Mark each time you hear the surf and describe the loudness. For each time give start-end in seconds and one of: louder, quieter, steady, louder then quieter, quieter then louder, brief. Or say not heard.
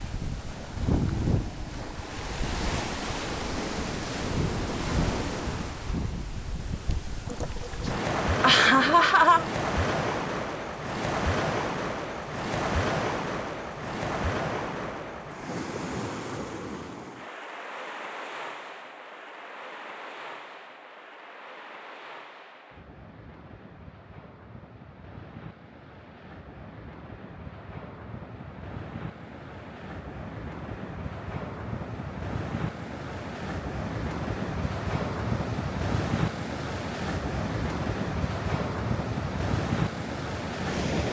0.0-41.0 quieter then louder.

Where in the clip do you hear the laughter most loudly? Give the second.
9 s.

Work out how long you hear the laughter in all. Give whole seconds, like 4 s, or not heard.
2 s.